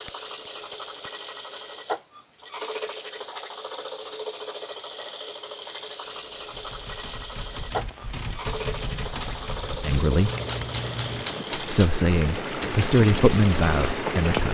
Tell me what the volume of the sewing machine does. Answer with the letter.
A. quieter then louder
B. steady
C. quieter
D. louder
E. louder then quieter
B.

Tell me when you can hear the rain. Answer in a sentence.
The rain can be heard from 6.0 to 14.5 s.